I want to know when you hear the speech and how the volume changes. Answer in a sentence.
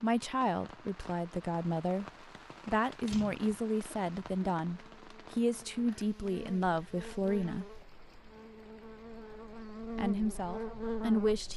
You can hear the speech from 0.0 to 7.7 s, at a steady volume; and briefly from 9.9 to 11.5 s.